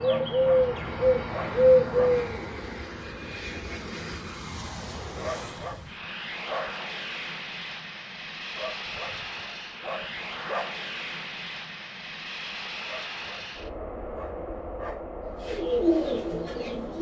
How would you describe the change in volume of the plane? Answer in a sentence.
The loudness of the plane stays about the same.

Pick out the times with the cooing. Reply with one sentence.
You can hear the cooing from 0.0 to 2.5 s and from 15.4 to 16.9 s.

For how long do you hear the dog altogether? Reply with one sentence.
The dog can be heard for 8 seconds in total.